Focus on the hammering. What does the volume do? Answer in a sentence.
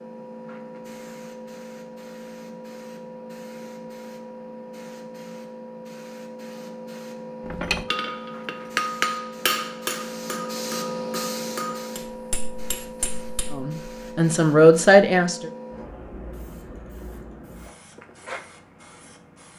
The volume of the hammering goes down.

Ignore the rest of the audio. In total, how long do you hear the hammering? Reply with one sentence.
You can hear the hammering for 6 seconds altogether.